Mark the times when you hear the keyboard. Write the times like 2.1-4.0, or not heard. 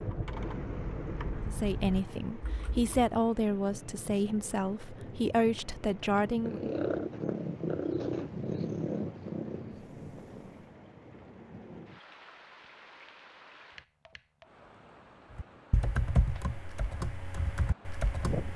0.0-2.9, 15.3-18.5.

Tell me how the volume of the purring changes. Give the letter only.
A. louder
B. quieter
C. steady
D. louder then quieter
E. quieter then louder
B.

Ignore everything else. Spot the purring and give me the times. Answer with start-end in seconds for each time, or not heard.
6.2-10.8.